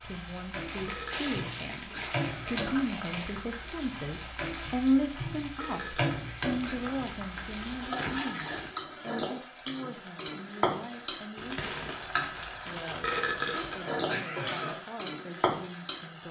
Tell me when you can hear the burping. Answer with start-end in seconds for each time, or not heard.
0.8-2.9, 5.6-7.0, 13.0-14.8.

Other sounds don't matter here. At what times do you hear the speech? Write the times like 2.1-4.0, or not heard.
0.0-16.2.